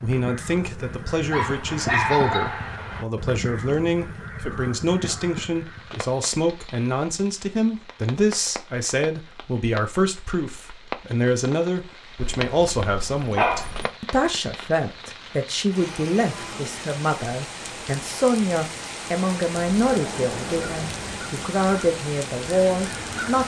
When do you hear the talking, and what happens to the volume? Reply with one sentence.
You can hear the talking from 0.0 to 23.4 s, at a steady volume.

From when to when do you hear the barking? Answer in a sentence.
You can hear the barking from 1.3 to 3.0 s and from 12.2 to 13.9 s.